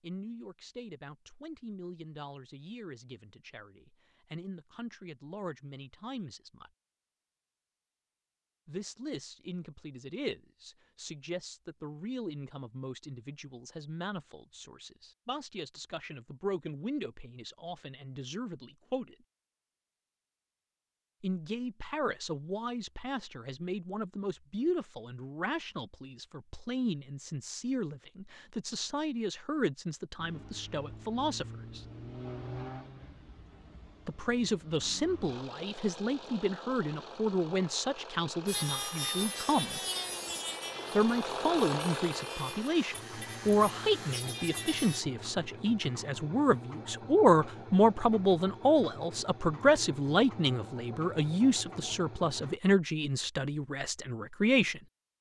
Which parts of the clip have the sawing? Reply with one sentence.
You can hear the sawing from 38.5 to 45.0 s.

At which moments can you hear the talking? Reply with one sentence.
The talking can be heard from 0.0 to 6.7 s, from 8.7 to 19.1 s, from 21.2 to 31.9 s, from 34.0 to 39.8 s and from 41.0 to 54.8 s.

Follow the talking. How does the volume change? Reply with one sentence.
The loudness of the talking goes up.